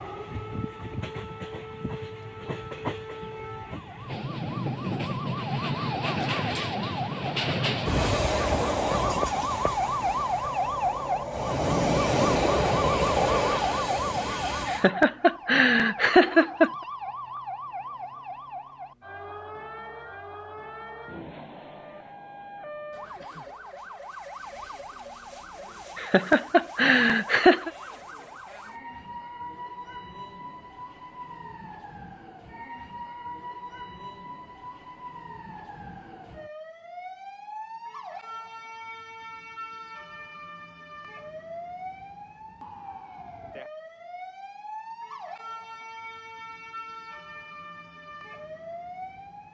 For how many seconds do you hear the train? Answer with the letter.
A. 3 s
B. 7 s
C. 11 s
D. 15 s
D.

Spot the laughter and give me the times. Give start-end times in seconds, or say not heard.
14.7-16.7, 25.9-27.7.